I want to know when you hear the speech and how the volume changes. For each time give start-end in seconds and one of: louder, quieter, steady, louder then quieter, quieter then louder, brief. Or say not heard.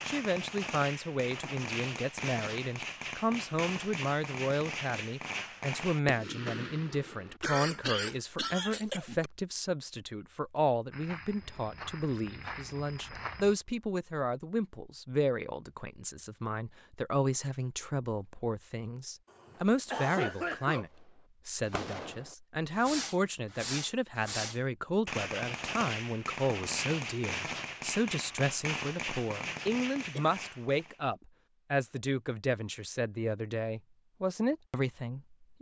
0.1-35.5 steady.